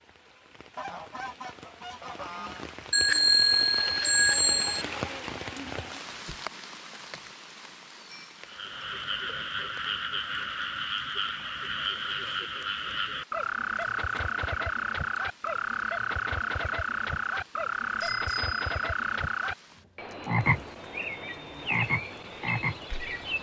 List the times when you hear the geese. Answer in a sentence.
The geese can be heard from 0.8 to 2.7 s.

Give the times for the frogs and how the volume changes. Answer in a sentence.
The frogs can be heard from 8.3 to 23.3 s, at a steady volume.